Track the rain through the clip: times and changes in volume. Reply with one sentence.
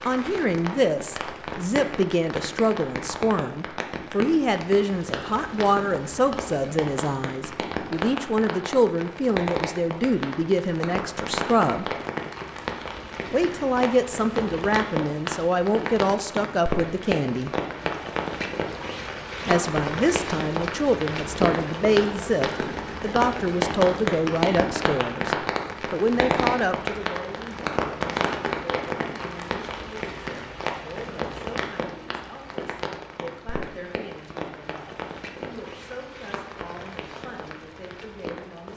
You can hear the rain from 0.0 to 38.7 s, getting louder then quieter.